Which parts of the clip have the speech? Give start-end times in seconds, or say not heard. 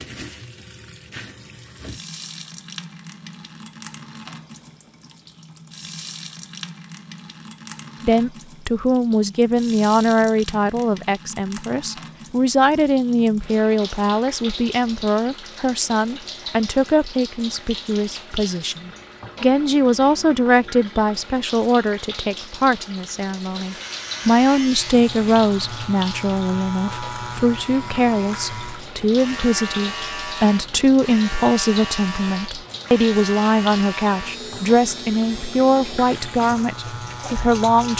8.0-37.9.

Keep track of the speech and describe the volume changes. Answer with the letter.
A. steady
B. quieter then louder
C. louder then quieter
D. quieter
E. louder
A.